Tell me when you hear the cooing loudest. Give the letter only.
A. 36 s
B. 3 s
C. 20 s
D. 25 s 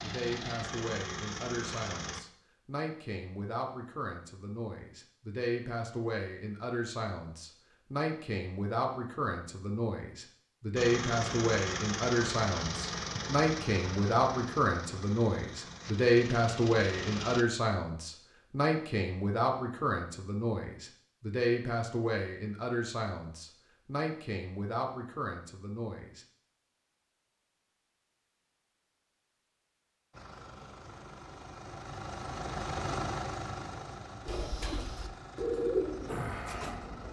A.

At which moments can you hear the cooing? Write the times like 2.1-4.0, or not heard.
34.2-37.0.